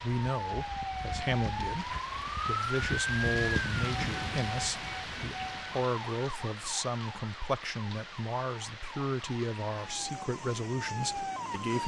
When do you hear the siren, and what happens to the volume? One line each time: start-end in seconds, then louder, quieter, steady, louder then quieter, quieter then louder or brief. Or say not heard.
0.0-11.8 quieter then louder.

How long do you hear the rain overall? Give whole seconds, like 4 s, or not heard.
12 s.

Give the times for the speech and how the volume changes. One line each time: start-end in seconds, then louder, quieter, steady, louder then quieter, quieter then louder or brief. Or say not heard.
0.0-11.8 steady.